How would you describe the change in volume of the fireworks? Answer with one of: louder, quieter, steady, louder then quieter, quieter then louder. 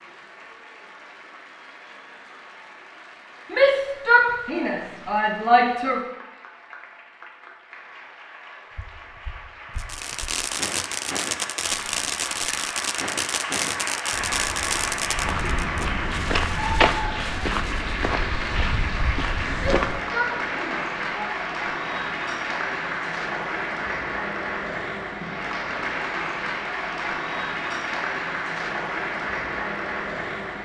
quieter.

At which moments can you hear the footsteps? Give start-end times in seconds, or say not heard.
8.7-20.1.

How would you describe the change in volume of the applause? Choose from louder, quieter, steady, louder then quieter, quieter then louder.
louder.